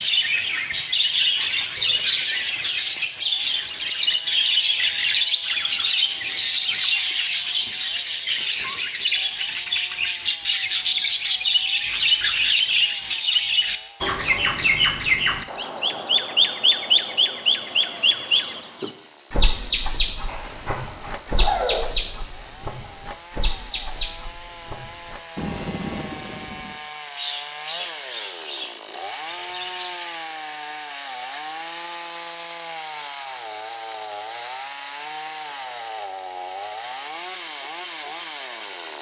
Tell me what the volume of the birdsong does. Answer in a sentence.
The volume of the birdsong goes down.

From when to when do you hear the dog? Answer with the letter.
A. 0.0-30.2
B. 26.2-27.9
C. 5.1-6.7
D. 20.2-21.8
D.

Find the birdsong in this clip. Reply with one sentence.
The birdsong can be heard from 0.0 to 30.2 s.